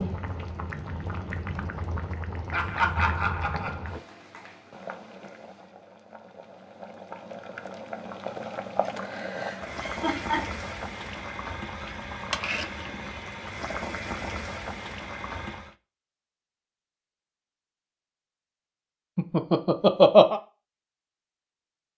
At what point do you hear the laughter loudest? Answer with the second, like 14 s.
20 s.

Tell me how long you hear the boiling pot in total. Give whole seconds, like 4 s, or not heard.
16 s.